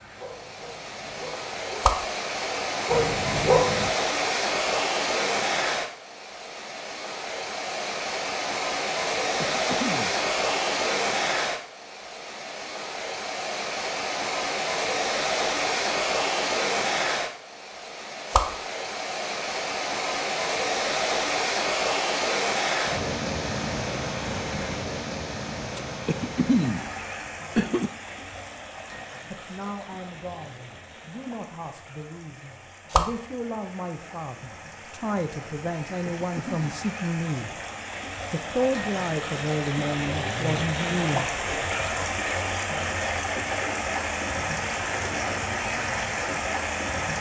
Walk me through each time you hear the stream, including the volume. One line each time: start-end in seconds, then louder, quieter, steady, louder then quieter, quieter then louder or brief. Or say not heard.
0.0-47.1 quieter then louder.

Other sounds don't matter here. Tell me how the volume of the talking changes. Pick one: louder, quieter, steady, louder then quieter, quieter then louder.
louder.